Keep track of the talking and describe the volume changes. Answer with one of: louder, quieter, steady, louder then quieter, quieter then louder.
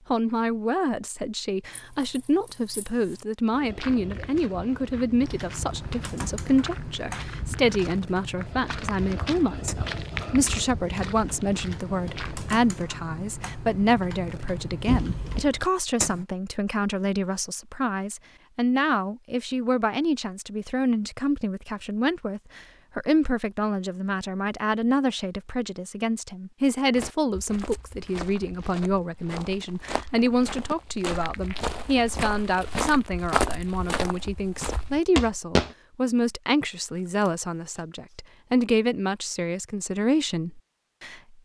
steady.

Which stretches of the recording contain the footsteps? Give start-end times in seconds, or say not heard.
3.5-12.6, 26.9-35.8.